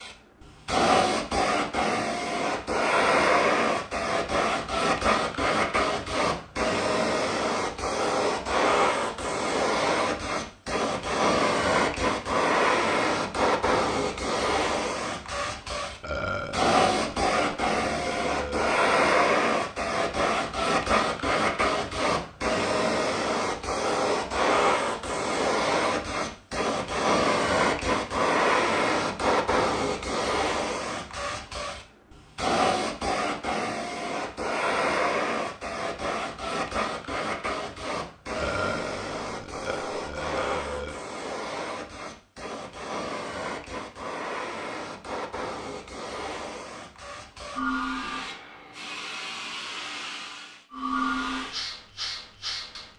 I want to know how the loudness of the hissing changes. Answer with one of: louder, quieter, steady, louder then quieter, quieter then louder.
quieter.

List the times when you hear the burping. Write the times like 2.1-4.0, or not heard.
16.0-18.8, 38.3-41.0.